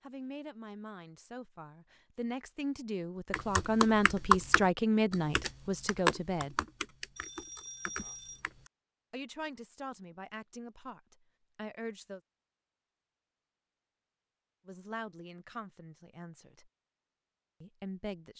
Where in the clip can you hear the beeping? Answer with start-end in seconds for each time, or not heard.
7.2-8.4.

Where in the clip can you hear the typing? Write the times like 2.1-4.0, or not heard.
3.3-8.7.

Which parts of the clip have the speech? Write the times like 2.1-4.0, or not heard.
0.0-6.6, 9.1-12.2, 14.7-16.7, 17.6-18.3.